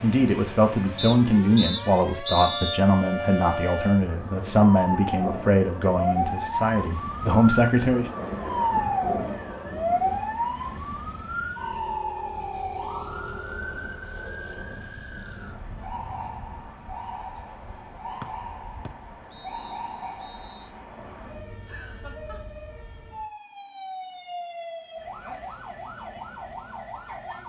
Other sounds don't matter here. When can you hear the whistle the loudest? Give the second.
2 s.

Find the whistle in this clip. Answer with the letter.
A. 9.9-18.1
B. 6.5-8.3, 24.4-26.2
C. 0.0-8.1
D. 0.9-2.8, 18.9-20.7
D.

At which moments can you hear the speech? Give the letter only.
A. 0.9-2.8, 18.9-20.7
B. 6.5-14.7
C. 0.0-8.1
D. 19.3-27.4
C.